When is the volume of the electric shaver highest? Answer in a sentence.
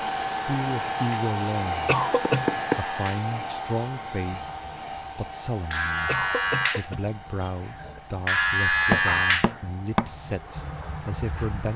The volume of the electric shaver peaks at 9 seconds.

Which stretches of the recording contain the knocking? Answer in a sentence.
The knocking can be heard from 2.2 to 2.8 s and from 8.9 to 10.1 s.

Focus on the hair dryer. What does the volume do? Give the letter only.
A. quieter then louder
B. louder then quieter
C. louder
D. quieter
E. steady
D.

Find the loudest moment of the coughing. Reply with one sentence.
The loudest moment of the coughing is at 2 seconds.